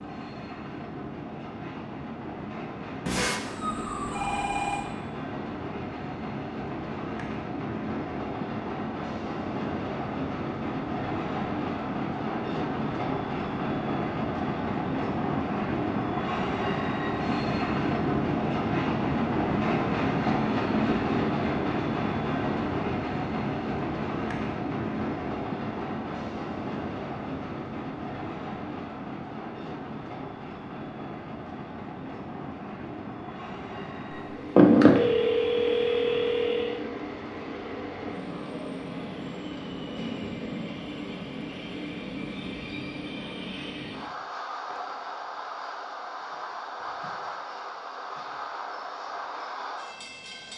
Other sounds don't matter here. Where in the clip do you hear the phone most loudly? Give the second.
35 s.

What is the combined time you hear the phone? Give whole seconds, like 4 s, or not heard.
4 s.